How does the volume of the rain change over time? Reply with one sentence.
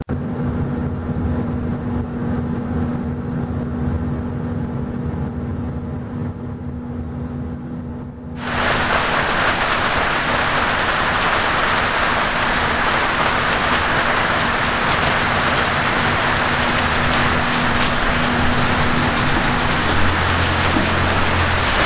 The volume of the rain stays about the same.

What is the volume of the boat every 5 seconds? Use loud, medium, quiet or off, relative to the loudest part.
loud, medium, medium, loud, loud.